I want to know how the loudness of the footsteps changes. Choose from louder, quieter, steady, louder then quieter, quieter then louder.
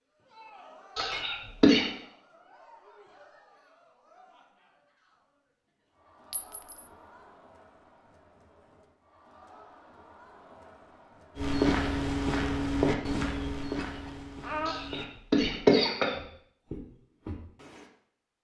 quieter then louder.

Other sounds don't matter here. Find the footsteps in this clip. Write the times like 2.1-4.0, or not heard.
11.3-17.9.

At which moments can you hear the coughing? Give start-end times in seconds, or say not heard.
0.9-1.9, 14.7-16.1.